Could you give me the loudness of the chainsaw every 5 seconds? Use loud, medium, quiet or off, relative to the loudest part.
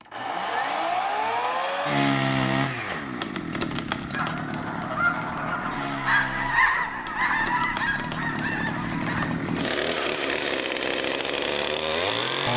loud, medium, loud.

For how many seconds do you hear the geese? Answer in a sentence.
You can hear the geese for 5 seconds altogether.